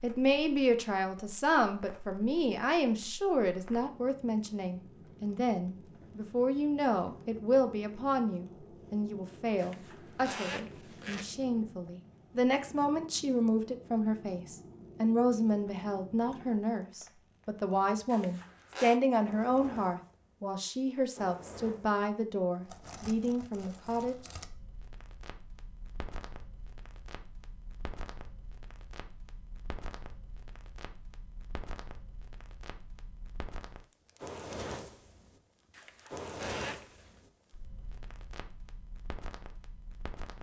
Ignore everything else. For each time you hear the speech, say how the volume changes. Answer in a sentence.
You can hear the speech from 0.0 to 24.1 s, at a steady volume.